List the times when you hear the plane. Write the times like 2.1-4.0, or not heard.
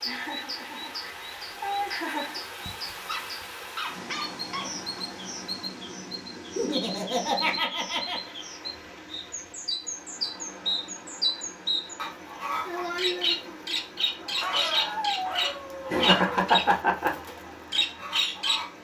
not heard.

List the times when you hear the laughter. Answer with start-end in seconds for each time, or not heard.
0.1-2.4, 6.5-8.3, 15.9-17.1.